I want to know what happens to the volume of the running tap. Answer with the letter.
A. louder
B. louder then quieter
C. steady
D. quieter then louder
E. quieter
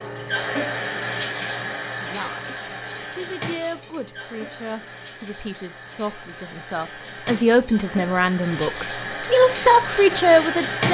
D.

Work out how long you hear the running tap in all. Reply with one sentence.
You can hear the running tap for 11 seconds altogether.